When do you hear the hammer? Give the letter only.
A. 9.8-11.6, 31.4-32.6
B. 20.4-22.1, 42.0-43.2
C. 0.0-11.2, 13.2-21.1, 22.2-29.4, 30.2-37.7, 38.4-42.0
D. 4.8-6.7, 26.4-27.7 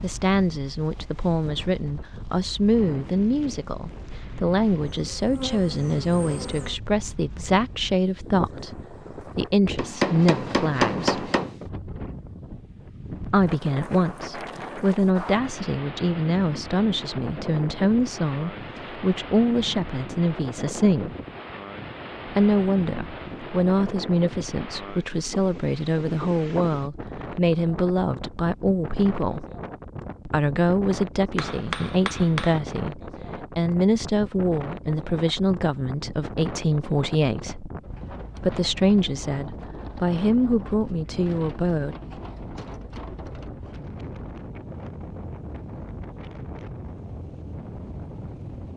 A.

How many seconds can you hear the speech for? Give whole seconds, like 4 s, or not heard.
37 s.